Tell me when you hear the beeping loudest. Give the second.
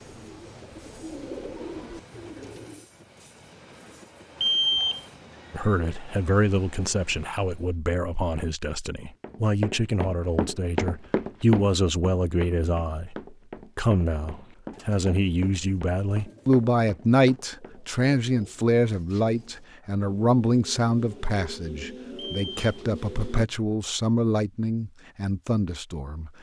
5 s.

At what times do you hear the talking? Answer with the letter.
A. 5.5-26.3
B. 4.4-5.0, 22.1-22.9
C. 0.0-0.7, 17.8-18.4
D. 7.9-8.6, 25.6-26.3
A.